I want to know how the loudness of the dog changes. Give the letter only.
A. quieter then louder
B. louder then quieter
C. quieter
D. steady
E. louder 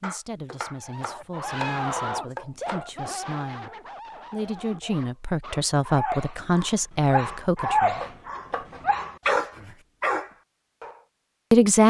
A.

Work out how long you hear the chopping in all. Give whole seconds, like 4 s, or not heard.
4 s.